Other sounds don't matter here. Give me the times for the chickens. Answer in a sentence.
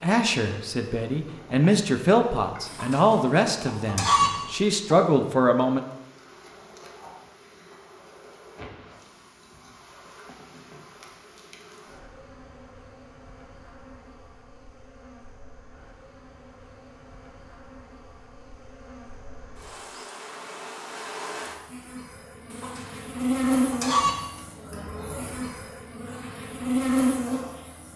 The chickens can be heard from 2.6 to 4.5 s and from 22.5 to 24.3 s.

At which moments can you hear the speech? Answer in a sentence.
You can hear the speech from 0.0 to 5.8 s.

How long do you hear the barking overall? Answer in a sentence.
The barking can't be heard in this clip.